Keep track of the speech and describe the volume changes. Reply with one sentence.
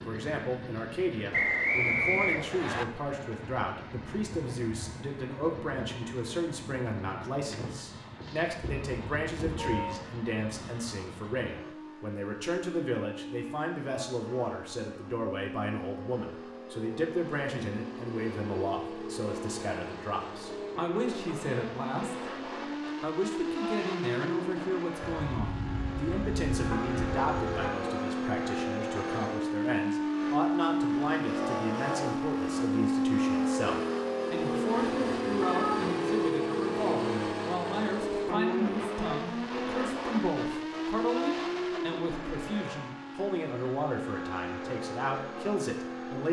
The volume of the speech stays about the same.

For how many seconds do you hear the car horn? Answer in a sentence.
The car horn can be heard for 5 seconds in total.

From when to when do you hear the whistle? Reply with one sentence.
The whistle can be heard from 1.3 to 2.9 s.